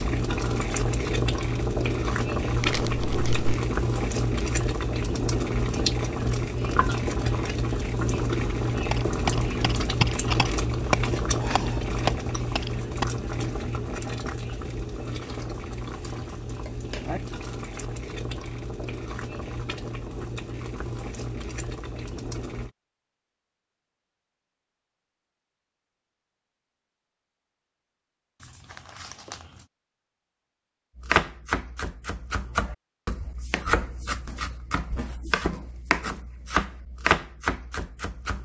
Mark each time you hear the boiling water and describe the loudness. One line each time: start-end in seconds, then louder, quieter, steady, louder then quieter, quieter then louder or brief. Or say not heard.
0.0-22.7 quieter.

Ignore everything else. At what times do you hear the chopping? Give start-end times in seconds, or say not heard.
8.9-13.1, 30.9-38.4.